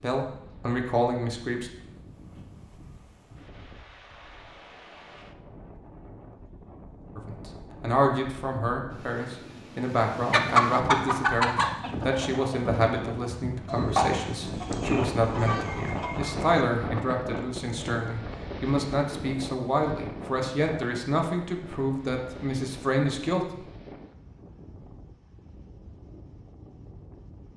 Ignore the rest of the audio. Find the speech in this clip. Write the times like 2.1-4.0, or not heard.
0.0-1.7, 7.2-23.6.